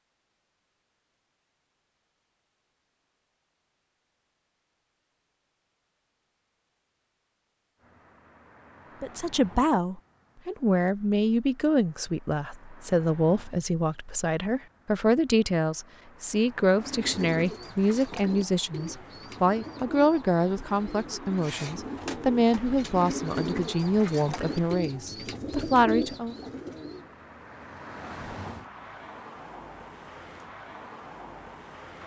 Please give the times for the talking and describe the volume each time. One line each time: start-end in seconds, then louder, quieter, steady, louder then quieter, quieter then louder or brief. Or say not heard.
9.0-26.4 steady.